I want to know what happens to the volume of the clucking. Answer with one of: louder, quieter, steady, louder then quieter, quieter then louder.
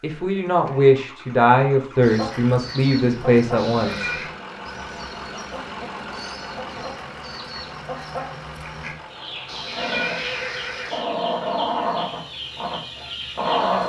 quieter then louder.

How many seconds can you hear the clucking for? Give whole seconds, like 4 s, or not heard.
12 s.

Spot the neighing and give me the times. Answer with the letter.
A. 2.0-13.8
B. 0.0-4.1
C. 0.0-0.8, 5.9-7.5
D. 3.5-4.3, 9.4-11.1
D.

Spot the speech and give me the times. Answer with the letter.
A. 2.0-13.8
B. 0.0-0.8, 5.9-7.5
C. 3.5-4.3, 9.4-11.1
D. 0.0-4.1
D.